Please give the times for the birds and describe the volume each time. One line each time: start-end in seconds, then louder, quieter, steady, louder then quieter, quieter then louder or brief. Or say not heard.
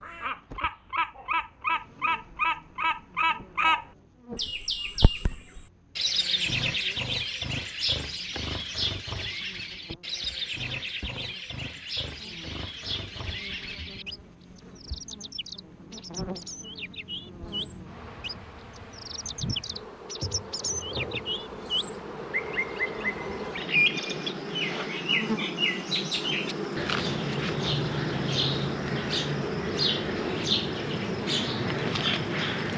0.0-32.7 quieter then louder.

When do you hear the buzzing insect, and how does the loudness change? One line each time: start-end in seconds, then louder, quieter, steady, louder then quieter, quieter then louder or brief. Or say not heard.
0.0-32.7 louder.